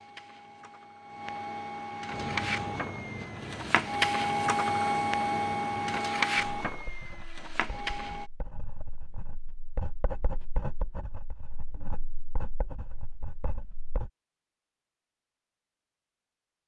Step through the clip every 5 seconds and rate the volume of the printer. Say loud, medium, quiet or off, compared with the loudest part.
loud, loud, off, off.